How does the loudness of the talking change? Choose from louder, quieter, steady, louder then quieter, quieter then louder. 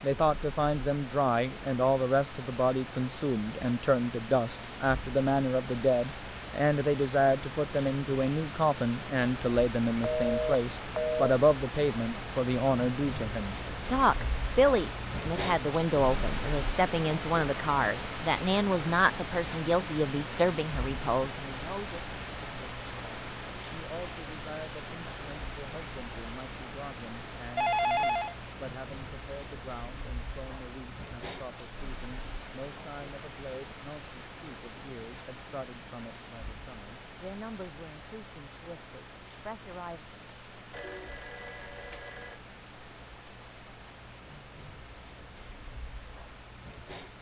quieter.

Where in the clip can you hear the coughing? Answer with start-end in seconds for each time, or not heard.
not heard.